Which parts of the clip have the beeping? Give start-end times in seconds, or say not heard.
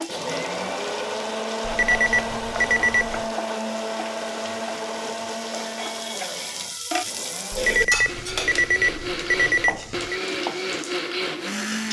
1.6-3.3, 7.5-10.2.